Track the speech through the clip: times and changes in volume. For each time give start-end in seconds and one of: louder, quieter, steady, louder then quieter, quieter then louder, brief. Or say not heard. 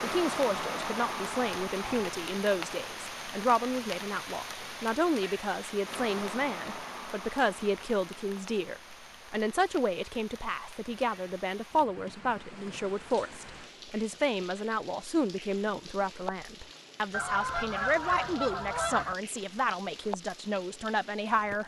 0.0-21.6 steady.